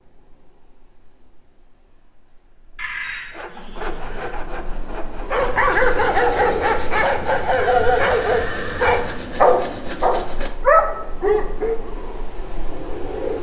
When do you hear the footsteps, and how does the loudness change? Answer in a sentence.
The footsteps can't be heard in this clip.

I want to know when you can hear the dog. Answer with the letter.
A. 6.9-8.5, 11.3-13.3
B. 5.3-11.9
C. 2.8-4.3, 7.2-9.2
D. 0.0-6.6
B.